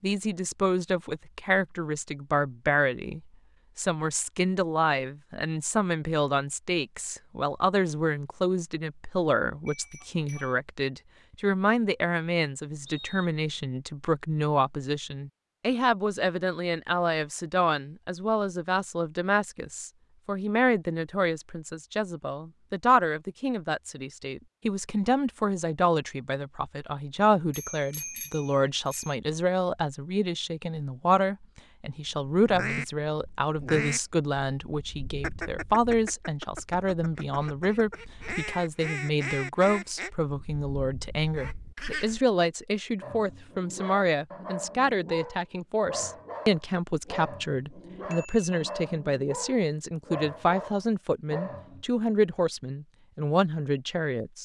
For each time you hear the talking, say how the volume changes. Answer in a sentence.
You can hear the talking from 0.0 to 54.3 s, at a steady volume.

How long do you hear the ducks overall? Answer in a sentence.
You can hear the ducks for 10 seconds altogether.